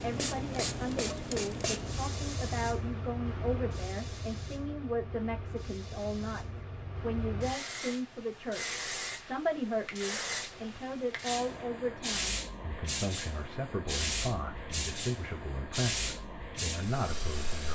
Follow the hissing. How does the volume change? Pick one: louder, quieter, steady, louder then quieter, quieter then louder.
quieter then louder.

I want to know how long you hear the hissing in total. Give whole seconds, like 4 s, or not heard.
18 s.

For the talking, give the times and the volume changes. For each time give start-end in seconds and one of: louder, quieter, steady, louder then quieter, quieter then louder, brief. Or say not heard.
0.0-17.7 steady.